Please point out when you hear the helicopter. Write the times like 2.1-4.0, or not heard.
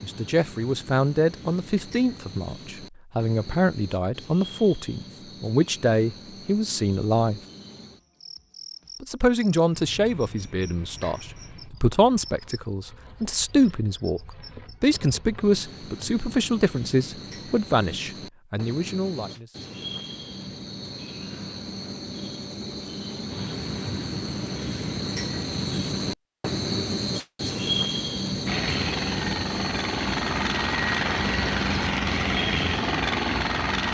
28.4-33.9.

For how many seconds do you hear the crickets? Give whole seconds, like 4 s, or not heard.
34 s.